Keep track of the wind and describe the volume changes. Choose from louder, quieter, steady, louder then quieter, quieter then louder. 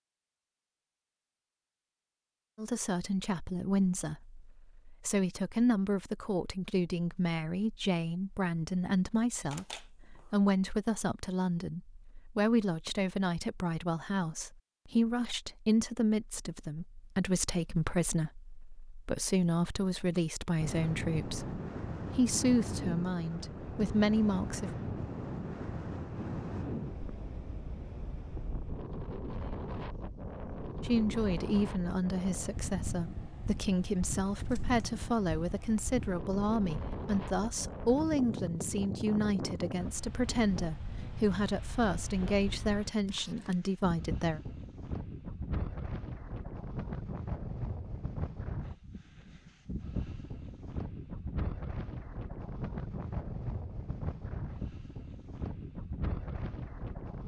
steady.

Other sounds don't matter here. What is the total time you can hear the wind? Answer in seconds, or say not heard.
37 s.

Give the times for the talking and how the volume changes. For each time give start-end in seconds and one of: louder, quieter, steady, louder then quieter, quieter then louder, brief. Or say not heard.
2.5-24.7 steady
30.8-44.4 steady.